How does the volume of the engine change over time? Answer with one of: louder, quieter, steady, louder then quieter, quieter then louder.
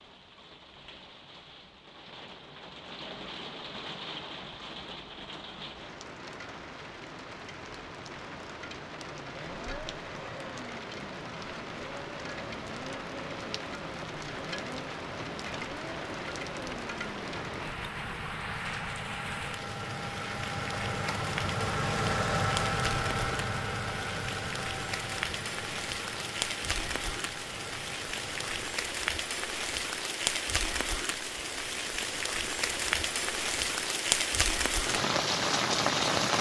louder then quieter.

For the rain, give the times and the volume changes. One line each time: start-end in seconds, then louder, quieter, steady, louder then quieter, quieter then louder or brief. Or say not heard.
0.0-36.3 louder.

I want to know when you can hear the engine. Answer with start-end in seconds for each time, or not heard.
9.0-28.9.